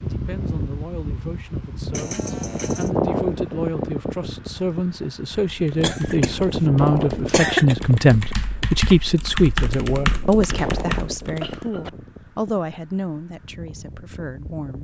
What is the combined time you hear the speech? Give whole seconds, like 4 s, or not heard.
15 s.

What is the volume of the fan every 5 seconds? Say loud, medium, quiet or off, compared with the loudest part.
loud, loud, medium.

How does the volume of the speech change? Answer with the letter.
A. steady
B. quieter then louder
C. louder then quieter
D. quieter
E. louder
C.